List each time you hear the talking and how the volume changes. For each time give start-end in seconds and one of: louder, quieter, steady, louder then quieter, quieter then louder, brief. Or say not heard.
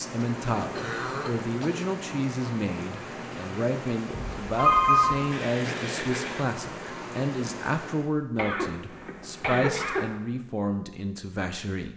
0.0-11.9 steady.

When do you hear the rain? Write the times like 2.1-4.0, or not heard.
0.0-8.1.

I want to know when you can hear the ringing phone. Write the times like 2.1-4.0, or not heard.
4.1-5.2.